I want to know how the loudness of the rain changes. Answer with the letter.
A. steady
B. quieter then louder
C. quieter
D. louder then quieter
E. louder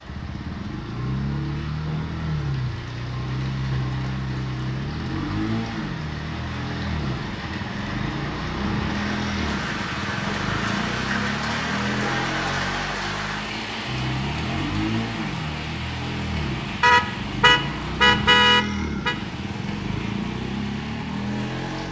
D.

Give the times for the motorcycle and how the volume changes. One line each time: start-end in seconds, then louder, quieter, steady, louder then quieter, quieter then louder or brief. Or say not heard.
0.0-21.8 steady.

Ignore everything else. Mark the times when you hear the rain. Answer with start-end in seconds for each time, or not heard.
0.0-21.8.